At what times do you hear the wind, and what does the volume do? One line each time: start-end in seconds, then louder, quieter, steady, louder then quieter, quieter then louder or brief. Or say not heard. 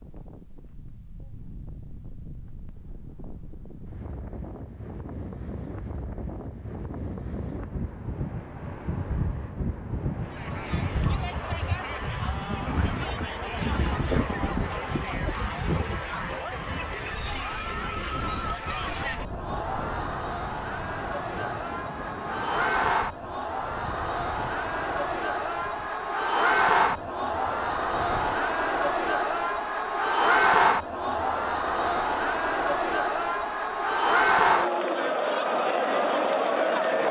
0.0-28.4 louder then quieter.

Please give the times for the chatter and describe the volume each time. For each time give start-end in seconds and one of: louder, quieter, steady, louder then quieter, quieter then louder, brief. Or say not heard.
10.2-37.0 louder.